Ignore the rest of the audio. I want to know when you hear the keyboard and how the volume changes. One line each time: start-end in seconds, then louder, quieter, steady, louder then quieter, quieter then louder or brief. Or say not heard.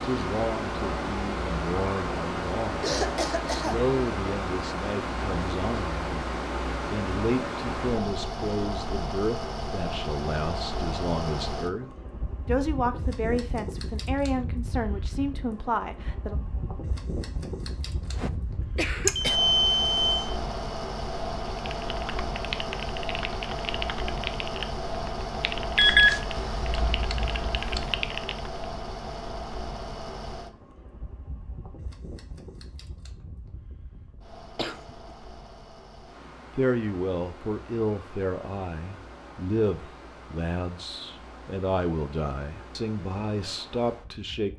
21.4-28.5 steady.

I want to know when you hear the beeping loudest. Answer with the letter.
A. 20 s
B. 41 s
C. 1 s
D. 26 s
D.